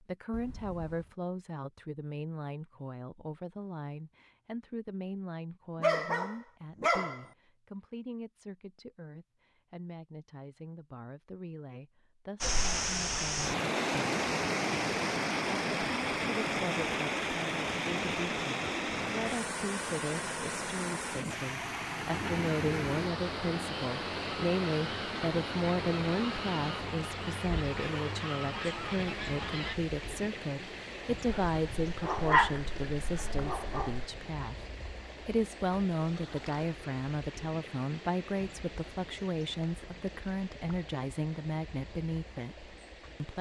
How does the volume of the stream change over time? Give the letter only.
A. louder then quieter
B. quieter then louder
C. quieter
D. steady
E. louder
C.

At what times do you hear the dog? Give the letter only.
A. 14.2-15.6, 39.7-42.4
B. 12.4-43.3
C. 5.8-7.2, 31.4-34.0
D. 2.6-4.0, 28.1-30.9
C.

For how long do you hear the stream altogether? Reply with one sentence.
You can hear the stream for 31 seconds altogether.